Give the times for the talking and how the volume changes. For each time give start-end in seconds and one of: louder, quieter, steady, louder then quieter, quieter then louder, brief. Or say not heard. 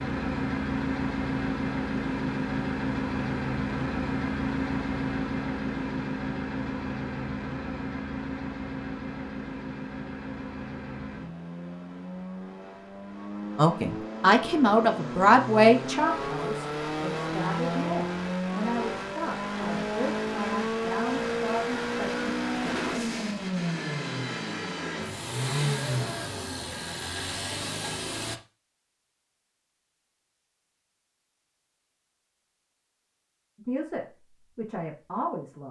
13.6-22.3 quieter
33.5-35.6 brief.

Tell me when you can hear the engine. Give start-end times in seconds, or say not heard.
0.0-28.4.